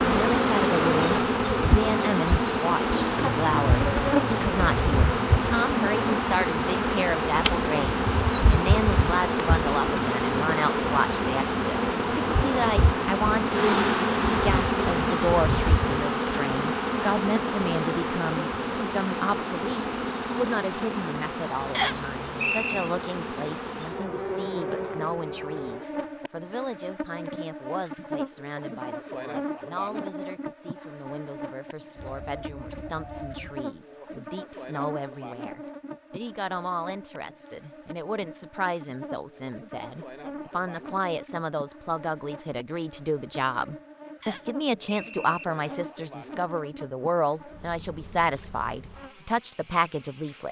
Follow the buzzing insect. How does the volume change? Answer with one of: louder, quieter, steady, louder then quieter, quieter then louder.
quieter.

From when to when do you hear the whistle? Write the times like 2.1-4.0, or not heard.
21.7-22.9, 44.2-45.5.